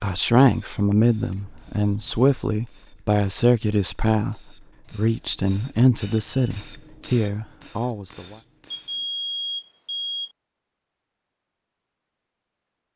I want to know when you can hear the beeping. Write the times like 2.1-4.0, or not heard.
1.3-2.3, 4.8-6.6, 8.7-10.3.